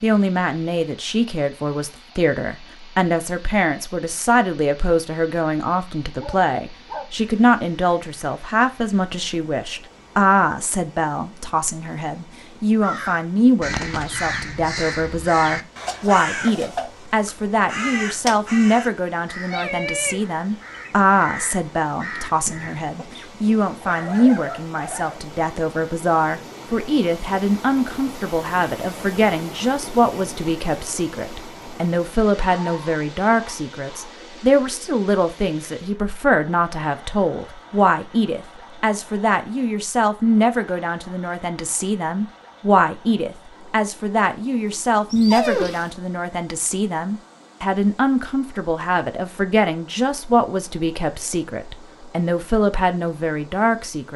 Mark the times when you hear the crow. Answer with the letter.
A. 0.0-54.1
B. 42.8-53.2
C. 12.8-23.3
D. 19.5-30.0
C.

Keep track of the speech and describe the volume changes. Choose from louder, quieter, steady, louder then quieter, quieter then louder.
steady.